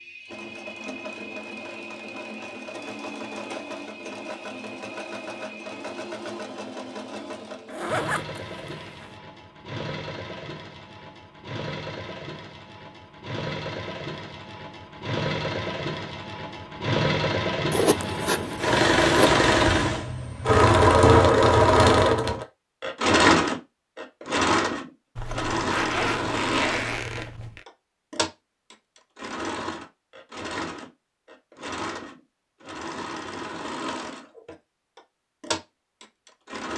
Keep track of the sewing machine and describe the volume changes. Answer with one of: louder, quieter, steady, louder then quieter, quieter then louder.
louder then quieter.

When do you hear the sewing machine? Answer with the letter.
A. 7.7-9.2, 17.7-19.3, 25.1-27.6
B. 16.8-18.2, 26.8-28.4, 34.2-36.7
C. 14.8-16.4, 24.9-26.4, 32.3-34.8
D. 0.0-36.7
D.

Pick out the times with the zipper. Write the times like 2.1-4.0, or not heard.
7.7-9.2, 17.7-19.3, 25.1-27.6.